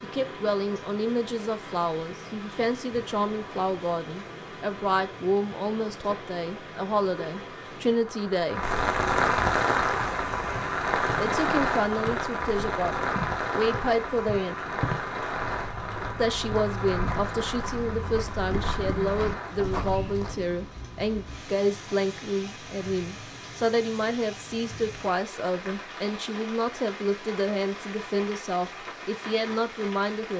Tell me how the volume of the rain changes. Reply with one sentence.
The loudness of the rain goes up, then down.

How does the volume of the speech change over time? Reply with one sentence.
The loudness of the speech stays about the same.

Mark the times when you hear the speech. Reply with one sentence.
You can hear the speech from 0.0 to 8.7 s, from 11.2 to 14.8 s and from 16.1 to 30.3 s.